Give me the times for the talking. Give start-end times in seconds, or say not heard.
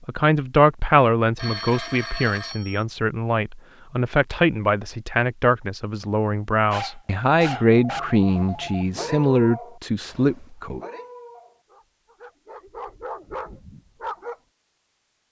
0.1-10.8.